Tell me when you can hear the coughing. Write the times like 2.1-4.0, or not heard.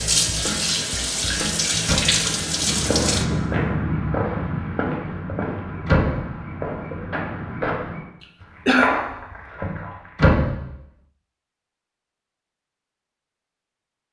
8.2-8.9.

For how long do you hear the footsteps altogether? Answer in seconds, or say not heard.
8 s.